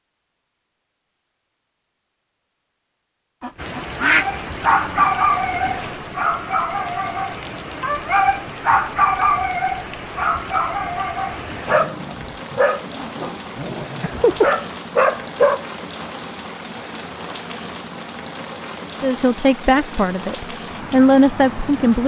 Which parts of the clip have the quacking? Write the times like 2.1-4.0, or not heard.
3.4-5.1.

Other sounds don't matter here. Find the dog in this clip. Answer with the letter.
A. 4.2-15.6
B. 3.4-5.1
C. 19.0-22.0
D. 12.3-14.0
A.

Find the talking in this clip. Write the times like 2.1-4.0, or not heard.
19.0-22.0.